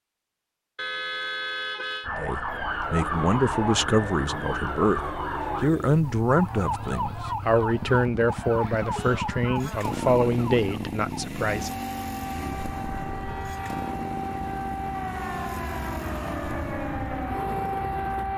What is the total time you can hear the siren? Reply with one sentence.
You can hear the siren for 16 seconds altogether.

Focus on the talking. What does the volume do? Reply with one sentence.
The loudness of the talking stays about the same.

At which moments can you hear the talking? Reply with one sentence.
You can hear the talking from 2.1 to 11.7 s.